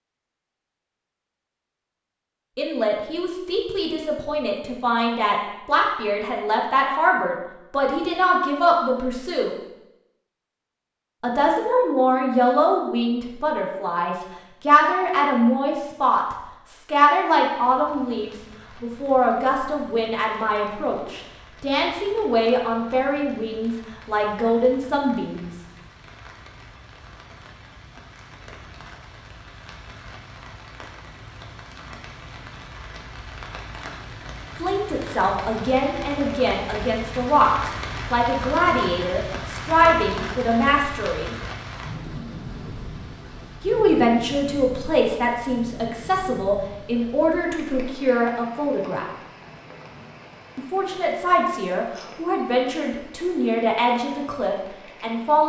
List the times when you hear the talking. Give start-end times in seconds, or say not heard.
2.5-9.6, 11.2-25.6, 34.6-41.4, 43.6-49.0, 50.5-55.4.